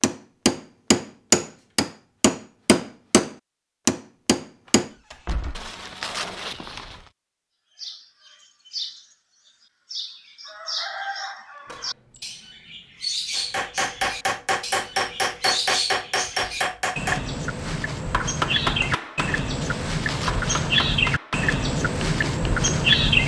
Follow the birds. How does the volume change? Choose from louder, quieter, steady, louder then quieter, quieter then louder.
louder.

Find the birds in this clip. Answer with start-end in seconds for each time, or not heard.
7.8-23.2.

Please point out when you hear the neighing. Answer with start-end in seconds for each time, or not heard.
5.5-7.1, 19.6-20.6.